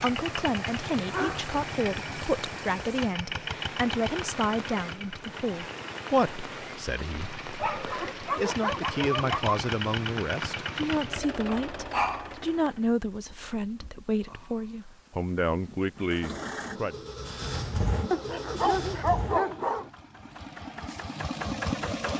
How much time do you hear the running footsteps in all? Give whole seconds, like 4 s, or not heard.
not heard.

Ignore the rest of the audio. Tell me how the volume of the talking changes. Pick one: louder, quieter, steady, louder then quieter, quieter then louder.
steady.